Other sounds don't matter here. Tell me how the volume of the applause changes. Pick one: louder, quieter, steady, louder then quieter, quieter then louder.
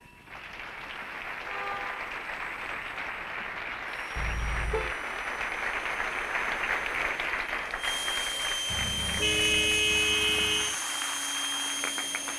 louder then quieter.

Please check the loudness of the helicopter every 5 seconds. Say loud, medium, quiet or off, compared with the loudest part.
quiet, loud, loud.